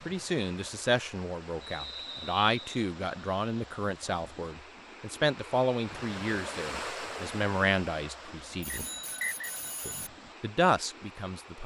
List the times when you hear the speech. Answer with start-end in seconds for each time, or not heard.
0.1-8.8, 9.8-11.6.